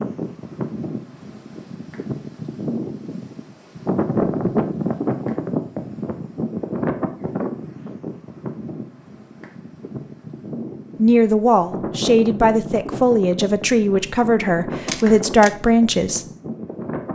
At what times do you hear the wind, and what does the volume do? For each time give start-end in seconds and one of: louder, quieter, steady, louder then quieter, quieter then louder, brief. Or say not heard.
0.0-17.0 louder then quieter.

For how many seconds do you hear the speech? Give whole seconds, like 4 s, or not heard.
5 s.